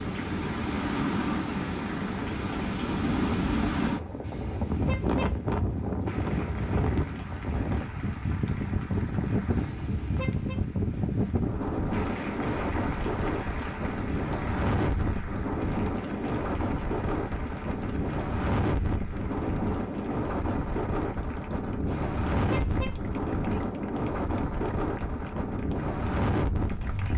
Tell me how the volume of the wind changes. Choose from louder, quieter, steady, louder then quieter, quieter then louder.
steady.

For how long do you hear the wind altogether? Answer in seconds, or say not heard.
27 s.